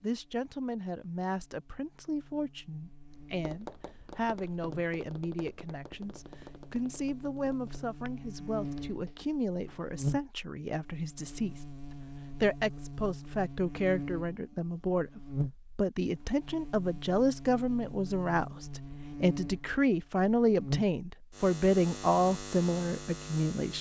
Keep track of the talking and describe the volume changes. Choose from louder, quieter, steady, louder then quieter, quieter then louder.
louder.